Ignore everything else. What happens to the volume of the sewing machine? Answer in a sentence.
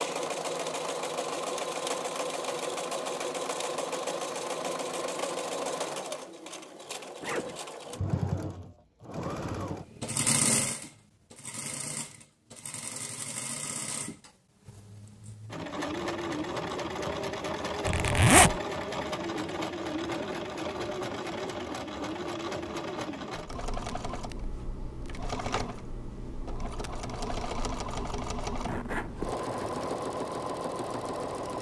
The volume of the sewing machine stays about the same.